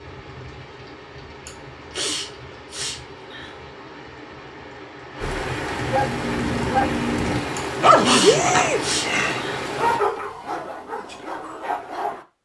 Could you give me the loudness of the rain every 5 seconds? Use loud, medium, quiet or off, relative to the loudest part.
quiet, loud, off.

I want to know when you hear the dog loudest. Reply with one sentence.
The volume of the dog peaks at 8 seconds.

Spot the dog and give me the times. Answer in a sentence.
The dog can be heard from 5.2 to 12.2 s.